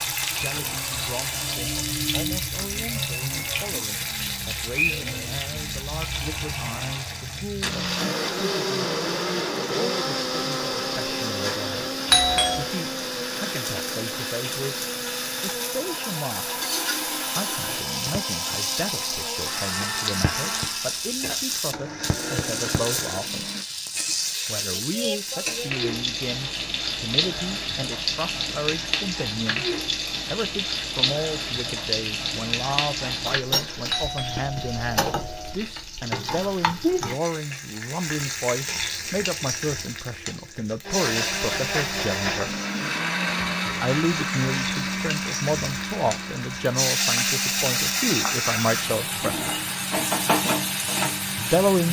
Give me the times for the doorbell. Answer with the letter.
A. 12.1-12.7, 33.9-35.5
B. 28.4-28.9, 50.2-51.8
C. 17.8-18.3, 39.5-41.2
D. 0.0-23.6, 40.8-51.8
A.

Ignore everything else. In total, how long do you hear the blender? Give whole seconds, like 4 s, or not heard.
35 s.